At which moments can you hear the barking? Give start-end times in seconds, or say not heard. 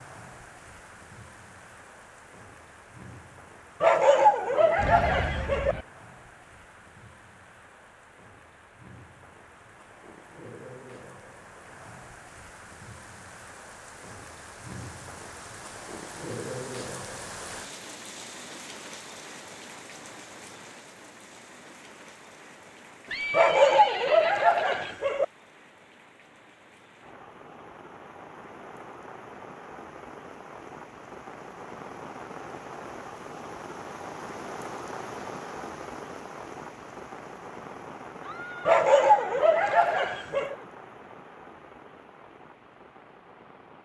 3.8-5.8, 23.3-25.2, 38.6-40.5.